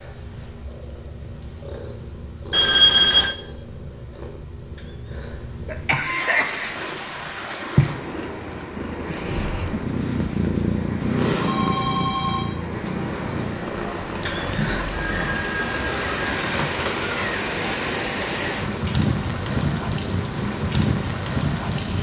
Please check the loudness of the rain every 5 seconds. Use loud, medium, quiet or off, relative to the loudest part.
off, medium, medium, loud, loud.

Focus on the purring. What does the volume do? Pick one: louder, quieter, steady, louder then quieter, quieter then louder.
louder then quieter.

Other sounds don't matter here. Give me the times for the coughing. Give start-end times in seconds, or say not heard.
5.1-6.8, 14.2-15.0.